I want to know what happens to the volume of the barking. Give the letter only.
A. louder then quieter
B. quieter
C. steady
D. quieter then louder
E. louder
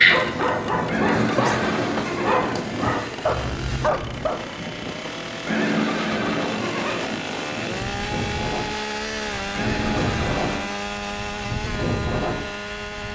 C.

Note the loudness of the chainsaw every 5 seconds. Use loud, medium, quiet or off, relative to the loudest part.
medium, loud, loud.